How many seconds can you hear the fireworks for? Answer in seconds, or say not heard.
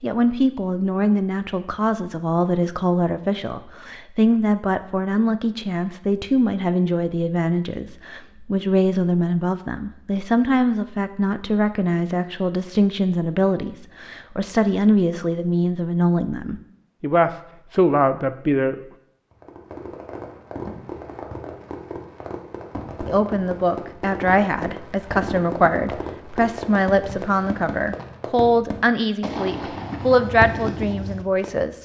12 s.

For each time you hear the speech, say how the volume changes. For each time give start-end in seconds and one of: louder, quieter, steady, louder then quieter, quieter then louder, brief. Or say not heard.
0.0-18.8 steady
23.1-31.8 steady.